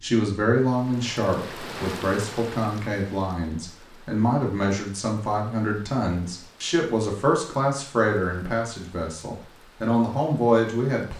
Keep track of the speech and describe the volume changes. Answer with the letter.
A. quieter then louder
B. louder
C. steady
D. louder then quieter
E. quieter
C.